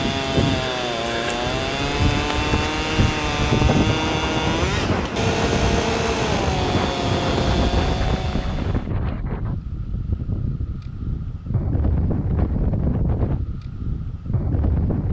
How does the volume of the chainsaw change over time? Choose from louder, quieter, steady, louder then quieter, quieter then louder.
steady.